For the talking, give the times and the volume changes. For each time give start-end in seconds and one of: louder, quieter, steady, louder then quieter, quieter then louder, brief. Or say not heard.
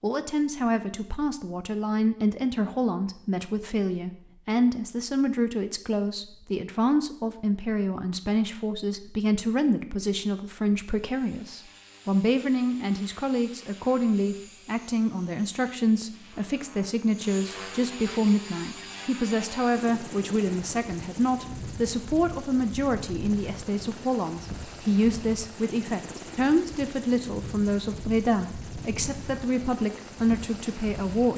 0.0-31.3 steady.